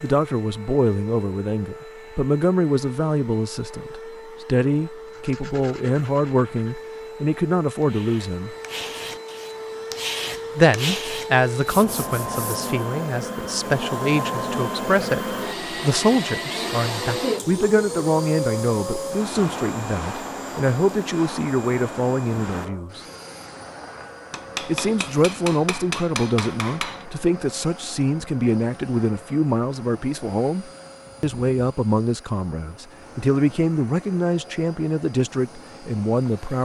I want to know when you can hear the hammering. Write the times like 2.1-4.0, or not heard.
24.3-27.1.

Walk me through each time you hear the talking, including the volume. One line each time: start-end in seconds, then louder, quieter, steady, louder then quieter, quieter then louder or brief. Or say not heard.
0.0-8.6 steady
10.6-23.0 steady
24.6-36.6 steady.